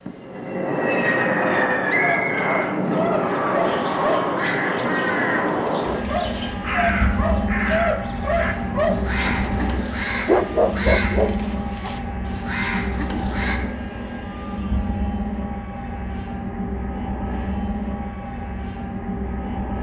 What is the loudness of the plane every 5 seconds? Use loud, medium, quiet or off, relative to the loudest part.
loud, loud, medium, medium.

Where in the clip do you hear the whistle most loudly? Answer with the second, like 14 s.
2 s.